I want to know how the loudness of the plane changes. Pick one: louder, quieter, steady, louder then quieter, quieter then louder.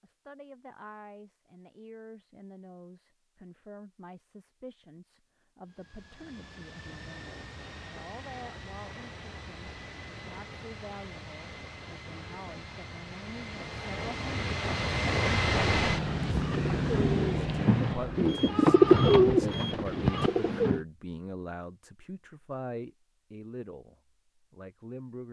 louder.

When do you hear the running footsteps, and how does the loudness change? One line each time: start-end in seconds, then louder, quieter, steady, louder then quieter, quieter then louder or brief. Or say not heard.
not heard.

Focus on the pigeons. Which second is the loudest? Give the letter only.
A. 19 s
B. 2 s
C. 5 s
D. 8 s
A.